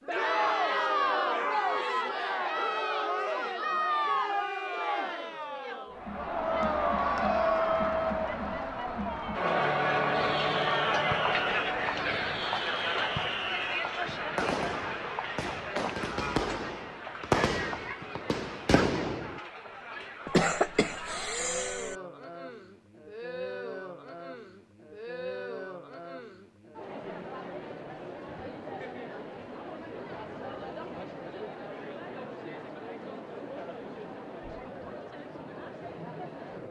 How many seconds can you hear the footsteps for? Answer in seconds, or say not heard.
not heard.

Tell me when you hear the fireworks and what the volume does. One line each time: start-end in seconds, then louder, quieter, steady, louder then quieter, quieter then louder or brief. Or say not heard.
10.1-19.4 louder.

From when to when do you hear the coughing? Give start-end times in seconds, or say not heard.
20.2-21.9.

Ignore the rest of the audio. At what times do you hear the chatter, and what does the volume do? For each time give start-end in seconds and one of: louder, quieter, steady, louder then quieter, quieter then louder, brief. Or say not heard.
0.0-36.6 quieter.